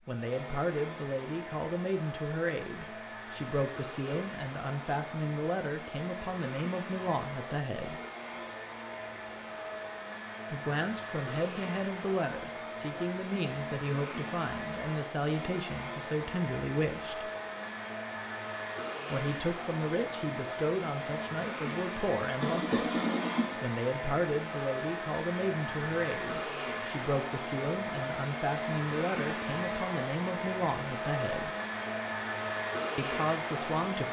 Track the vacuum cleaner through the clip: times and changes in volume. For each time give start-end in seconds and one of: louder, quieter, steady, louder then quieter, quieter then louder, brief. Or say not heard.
0.0-34.0 louder.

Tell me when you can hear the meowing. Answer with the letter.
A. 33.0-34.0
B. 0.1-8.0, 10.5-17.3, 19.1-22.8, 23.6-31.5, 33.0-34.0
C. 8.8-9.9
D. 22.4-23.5
D.